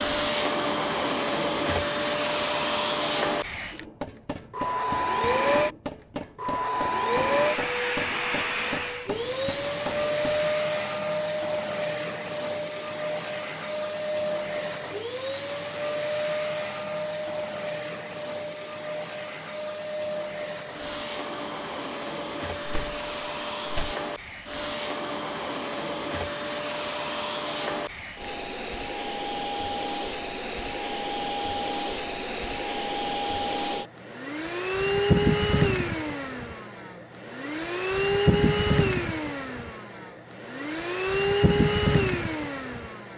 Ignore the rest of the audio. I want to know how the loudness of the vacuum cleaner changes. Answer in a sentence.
The loudness of the vacuum cleaner goes down, then up.